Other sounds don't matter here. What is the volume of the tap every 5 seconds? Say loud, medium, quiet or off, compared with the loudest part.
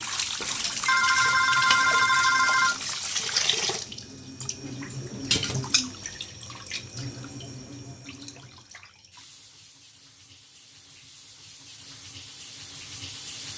loud, medium, quiet.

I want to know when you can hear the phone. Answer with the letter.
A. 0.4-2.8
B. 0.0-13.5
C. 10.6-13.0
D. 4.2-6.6
A.